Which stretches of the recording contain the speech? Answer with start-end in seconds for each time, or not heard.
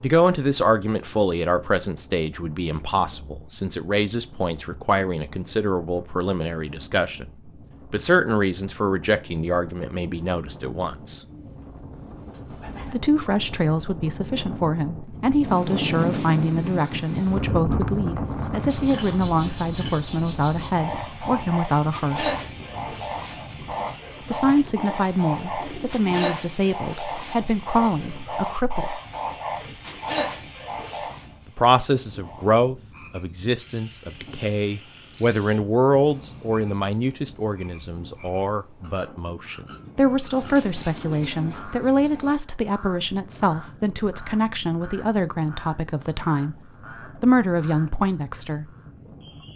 0.0-11.2, 12.8-22.4, 24.2-29.0, 31.4-46.5, 47.2-48.7.